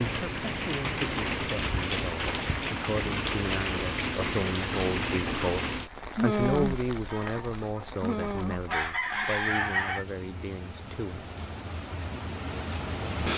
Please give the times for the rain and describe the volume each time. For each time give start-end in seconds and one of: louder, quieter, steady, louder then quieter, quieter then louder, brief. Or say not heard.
0.0-13.3 quieter.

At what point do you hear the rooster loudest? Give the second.
10 s.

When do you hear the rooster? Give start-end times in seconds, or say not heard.
7.1-10.1.